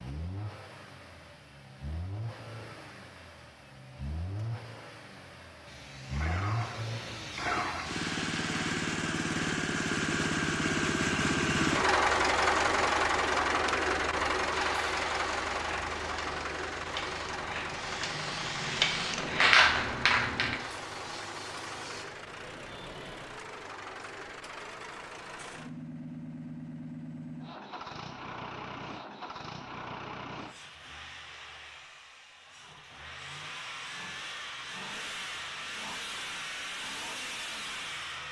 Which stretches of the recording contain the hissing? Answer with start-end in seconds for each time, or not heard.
5.7-8.9, 14.5-22.1.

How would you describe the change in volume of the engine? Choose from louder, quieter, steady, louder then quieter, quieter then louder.
louder then quieter.